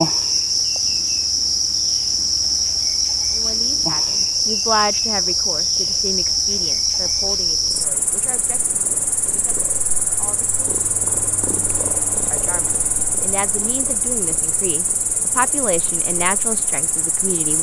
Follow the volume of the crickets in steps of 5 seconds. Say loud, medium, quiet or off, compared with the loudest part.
loud, loud, medium, medium.